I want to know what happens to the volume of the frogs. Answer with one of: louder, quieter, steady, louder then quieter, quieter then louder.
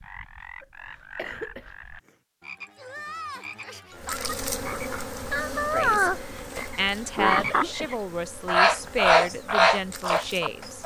louder.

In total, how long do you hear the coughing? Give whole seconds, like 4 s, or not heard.
2 s.